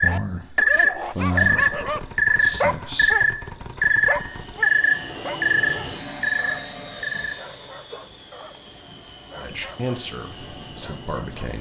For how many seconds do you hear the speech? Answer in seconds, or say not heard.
5 s.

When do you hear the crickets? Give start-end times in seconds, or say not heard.
0.0-11.5.